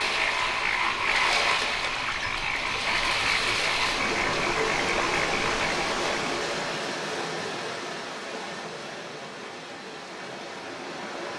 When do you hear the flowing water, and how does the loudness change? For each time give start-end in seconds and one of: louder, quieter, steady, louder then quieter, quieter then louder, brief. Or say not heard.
0.0-11.3 quieter.